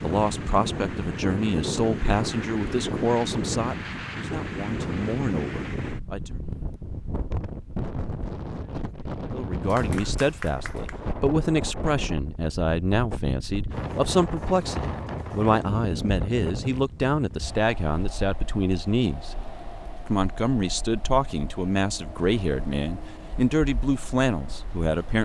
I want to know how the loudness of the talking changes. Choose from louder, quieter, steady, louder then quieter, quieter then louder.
steady.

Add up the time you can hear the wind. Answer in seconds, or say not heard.
25 s.